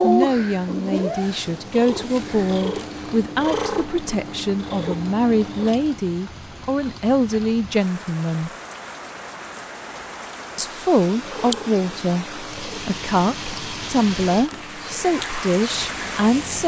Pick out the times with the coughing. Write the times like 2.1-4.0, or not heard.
not heard.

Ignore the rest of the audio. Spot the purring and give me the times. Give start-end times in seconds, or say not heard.
0.0-6.0, 11.0-16.4.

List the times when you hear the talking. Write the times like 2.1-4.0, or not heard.
0.0-8.5, 10.6-16.6.